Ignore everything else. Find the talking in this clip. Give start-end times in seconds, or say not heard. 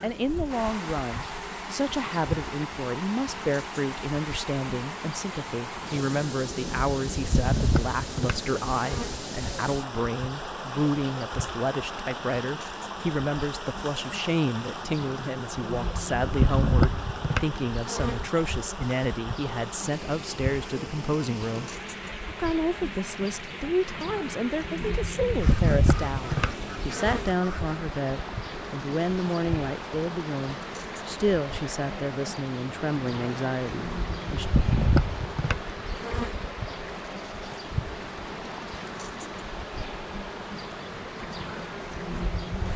0.0-34.5.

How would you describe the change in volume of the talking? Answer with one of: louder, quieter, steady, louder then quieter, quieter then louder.
steady.